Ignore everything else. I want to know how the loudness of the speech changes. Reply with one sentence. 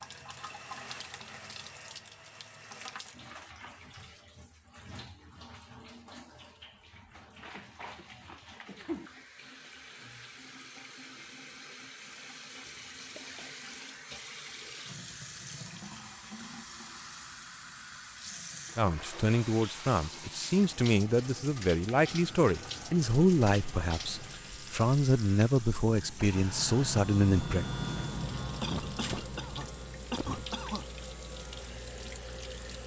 The loudness of the speech stays about the same.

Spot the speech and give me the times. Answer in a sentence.
The speech can be heard from 18.8 to 27.6 s.